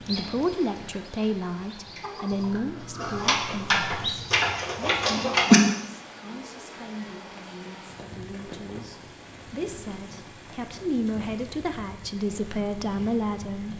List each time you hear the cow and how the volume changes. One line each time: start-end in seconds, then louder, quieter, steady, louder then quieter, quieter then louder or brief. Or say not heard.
not heard.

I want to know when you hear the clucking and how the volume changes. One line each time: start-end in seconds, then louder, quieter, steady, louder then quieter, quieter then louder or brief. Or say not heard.
0.0-5.6 louder.